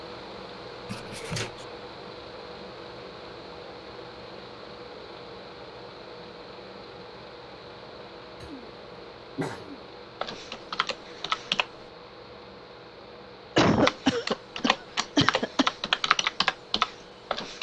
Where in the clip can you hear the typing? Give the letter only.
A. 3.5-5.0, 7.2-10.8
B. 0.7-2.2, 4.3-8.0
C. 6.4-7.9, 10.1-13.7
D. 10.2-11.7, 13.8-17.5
D.